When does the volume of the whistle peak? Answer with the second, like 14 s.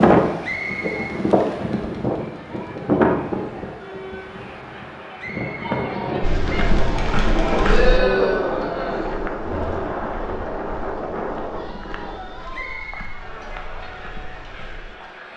1 s.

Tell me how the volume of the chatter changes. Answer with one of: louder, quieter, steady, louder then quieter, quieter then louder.
louder then quieter.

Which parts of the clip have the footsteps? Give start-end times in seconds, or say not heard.
6.2-15.0.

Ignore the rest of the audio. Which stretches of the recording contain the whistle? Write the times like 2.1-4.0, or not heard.
0.4-1.2, 5.2-6.0, 12.5-13.2.